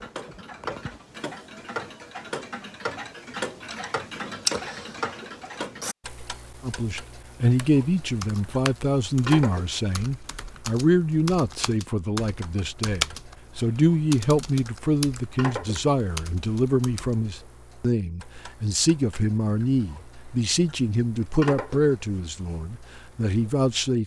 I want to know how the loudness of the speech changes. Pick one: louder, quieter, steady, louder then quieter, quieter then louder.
steady.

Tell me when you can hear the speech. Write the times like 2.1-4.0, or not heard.
6.6-24.0.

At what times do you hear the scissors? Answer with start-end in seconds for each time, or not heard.
not heard.